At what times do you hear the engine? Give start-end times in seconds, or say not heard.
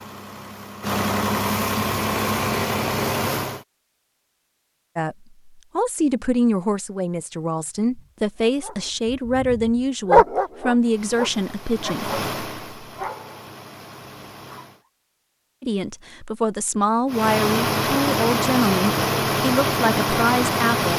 0.0-3.6, 10.8-14.8, 17.1-20.9.